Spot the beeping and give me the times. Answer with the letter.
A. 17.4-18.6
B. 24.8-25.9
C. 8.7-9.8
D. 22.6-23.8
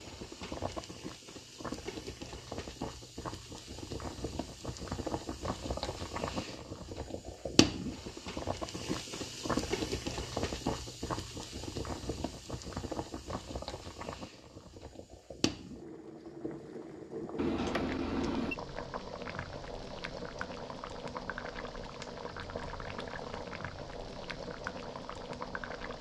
A.